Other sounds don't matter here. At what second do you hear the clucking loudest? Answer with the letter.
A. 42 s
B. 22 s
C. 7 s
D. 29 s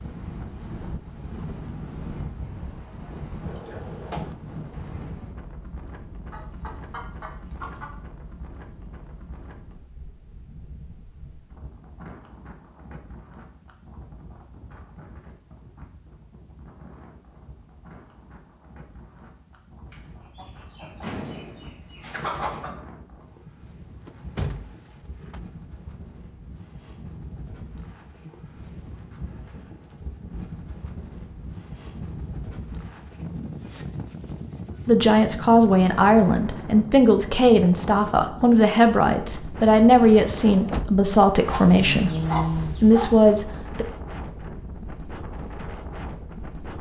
A.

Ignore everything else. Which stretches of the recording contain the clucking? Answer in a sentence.
You can hear the clucking from 6.3 to 8.0 s, from 19.9 to 22.7 s and from 41.5 to 43.1 s.